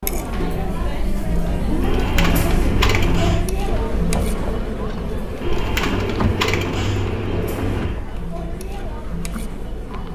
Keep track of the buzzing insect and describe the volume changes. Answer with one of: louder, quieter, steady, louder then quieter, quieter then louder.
quieter.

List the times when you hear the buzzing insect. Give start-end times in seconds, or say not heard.
3.6-10.1.